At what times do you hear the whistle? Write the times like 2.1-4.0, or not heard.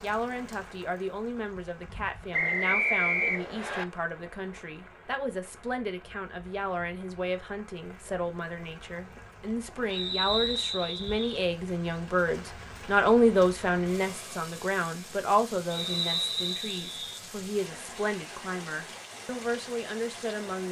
2.3-3.9, 9.9-11.2, 15.7-17.2.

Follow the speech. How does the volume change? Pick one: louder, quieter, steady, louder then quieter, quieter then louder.
louder then quieter.